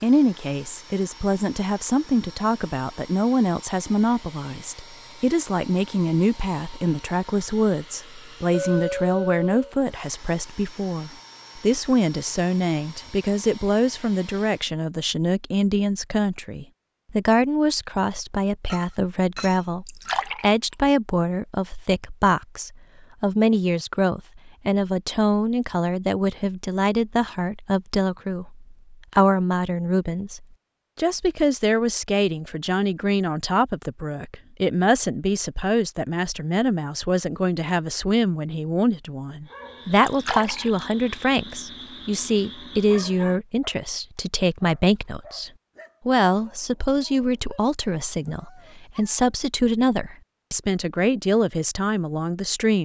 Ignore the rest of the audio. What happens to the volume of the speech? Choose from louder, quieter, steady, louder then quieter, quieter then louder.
steady.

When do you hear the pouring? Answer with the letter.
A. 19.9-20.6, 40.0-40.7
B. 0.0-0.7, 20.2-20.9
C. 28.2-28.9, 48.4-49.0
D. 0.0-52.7
A.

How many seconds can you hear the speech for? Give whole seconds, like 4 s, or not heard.
53 s.